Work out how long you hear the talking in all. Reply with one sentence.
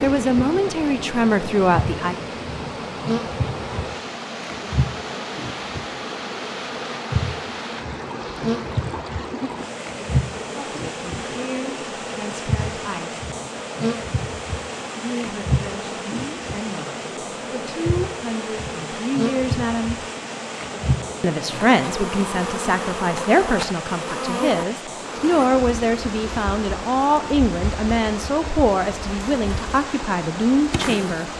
The talking can be heard for 20 seconds in total.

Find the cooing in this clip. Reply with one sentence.
You can't hear the cooing here.